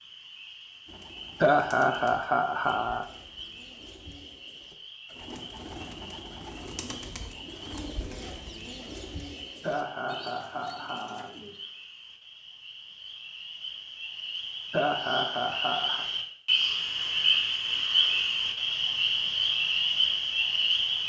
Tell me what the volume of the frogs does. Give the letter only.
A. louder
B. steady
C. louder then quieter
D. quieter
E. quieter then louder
A.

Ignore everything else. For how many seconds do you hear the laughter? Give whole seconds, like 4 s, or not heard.
5 s.